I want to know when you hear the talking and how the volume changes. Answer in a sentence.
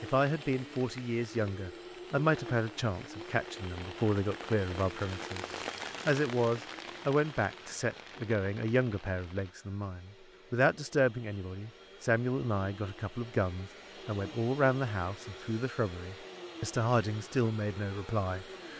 You can hear the talking from 0.0 to 18.7 s, at a steady volume.